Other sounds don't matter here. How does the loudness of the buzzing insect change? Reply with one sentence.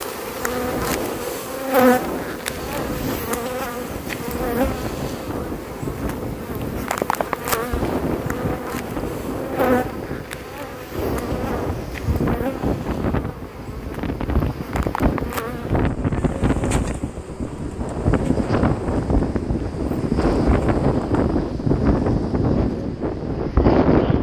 The loudness of the buzzing insect goes down.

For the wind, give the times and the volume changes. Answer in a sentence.
The wind can be heard from 0.0 to 24.1 s, getting louder.